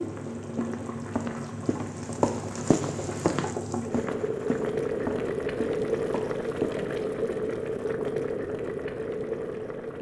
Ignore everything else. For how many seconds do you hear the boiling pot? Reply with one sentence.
You can hear the boiling pot for 10 seconds altogether.